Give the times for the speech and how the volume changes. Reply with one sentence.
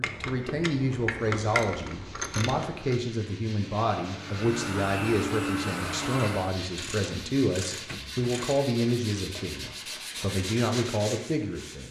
You can hear the speech from 0.0 to 11.8 s, at a steady volume.